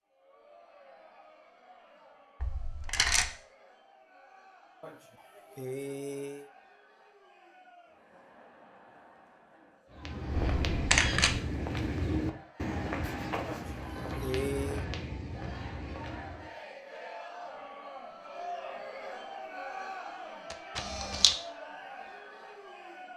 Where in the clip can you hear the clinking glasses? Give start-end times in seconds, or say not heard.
not heard.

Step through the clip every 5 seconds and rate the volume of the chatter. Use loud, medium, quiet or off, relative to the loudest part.
quiet, quiet, medium, loud, loud.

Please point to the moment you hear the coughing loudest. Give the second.
14 s.